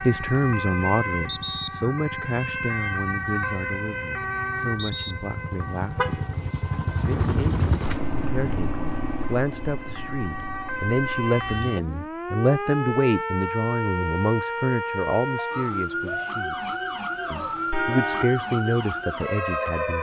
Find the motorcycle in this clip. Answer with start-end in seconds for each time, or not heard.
0.1-12.1.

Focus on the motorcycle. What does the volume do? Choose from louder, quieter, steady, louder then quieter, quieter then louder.
louder then quieter.